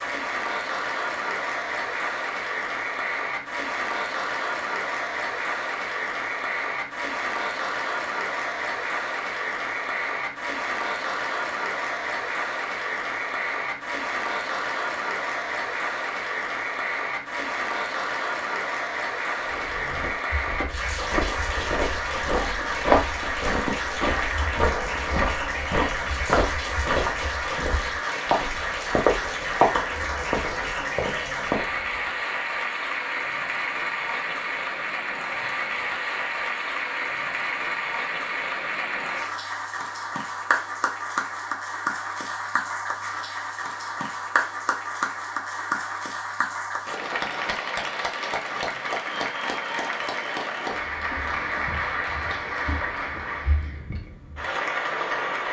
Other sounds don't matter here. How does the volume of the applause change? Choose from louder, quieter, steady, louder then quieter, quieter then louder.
steady.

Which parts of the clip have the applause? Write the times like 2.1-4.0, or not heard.
0.0-55.4.